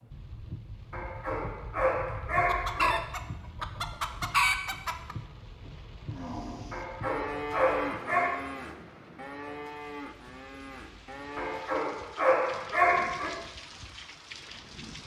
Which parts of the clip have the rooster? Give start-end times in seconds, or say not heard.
2.4-5.2.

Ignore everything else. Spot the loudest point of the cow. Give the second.
8 s.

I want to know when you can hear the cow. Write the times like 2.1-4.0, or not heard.
6.1-11.8.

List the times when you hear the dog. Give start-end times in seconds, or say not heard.
0.9-3.0, 6.7-8.3, 11.3-13.3.